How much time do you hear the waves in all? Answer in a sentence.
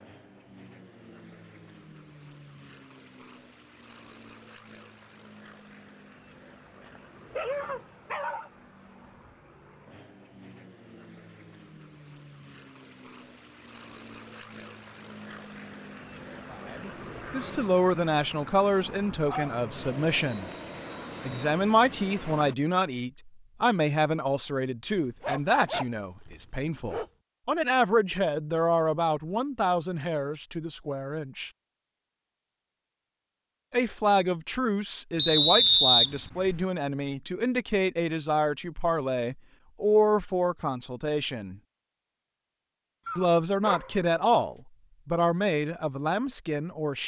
You can't hear the waves here.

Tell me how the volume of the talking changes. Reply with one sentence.
The loudness of the talking stays about the same.